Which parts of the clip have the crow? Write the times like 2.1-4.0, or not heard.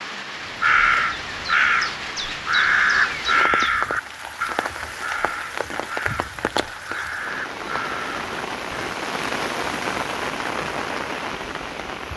0.5-8.9.